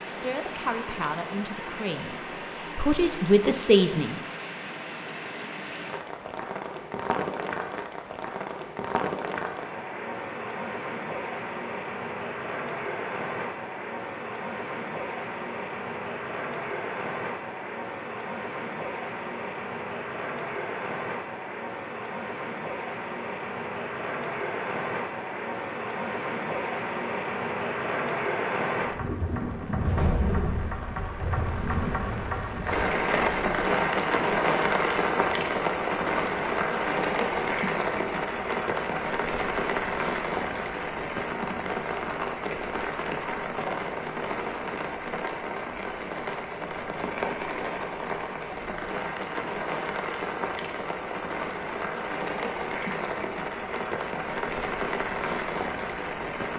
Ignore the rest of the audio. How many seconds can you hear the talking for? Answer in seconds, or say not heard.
4 s.